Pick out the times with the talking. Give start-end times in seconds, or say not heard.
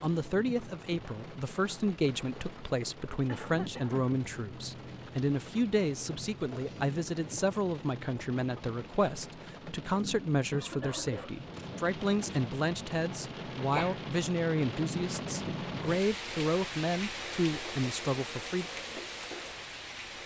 0.0-18.7.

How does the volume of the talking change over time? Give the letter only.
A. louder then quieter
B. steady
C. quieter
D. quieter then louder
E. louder
B.